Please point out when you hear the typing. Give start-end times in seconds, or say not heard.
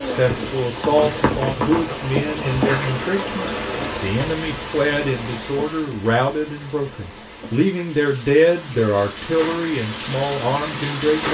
not heard.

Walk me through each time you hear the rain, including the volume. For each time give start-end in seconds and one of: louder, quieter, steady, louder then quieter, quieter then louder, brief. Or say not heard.
0.0-11.2 quieter then louder.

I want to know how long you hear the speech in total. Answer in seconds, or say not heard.
11 s.